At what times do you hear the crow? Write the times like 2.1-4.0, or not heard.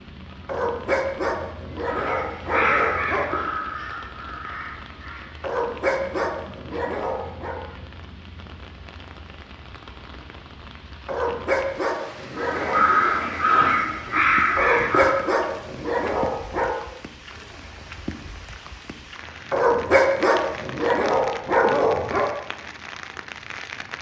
1.8-5.3, 12.2-15.2.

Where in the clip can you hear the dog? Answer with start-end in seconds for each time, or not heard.
0.5-3.3, 5.4-7.5, 11.1-12.8, 14.6-16.7, 19.5-22.3.